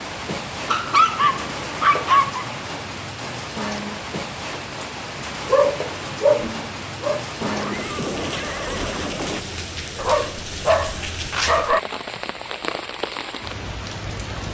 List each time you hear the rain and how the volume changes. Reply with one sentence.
The rain can be heard from 0.0 to 14.4 s, at a steady volume.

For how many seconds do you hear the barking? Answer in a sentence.
The barking can be heard for 5 seconds in total.